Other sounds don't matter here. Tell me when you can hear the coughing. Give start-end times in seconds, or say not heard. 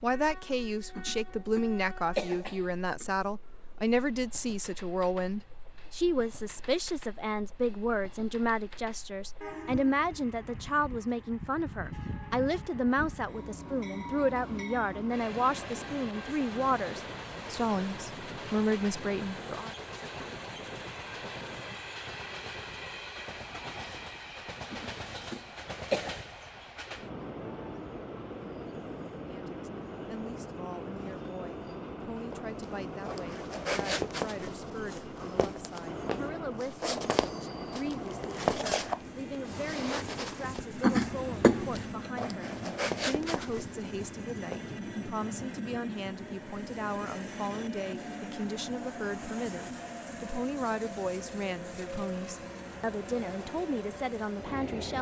0.9-3.0, 24.7-26.2, 40.8-41.9.